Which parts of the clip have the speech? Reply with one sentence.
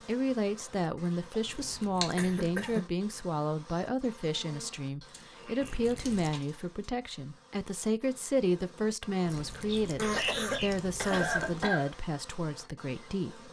You can hear the speech from 0.1 to 13.4 s.